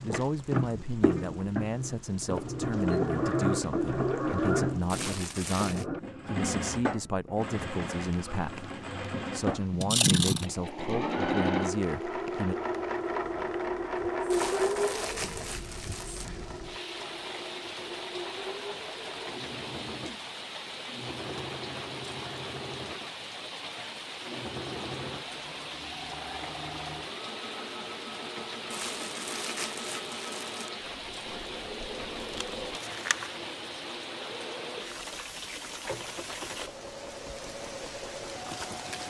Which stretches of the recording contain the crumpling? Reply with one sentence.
The crumpling can be heard from 4.9 to 5.8 s, from 14.3 to 16.3 s and from 28.7 to 30.7 s.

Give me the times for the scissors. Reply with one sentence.
The scissors can be heard from 9.8 to 10.4 s and from 32.2 to 33.3 s.